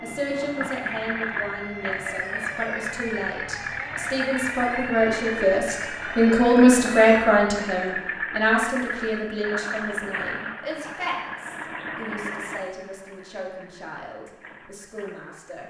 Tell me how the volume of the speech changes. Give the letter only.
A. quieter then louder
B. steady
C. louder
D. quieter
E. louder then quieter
E.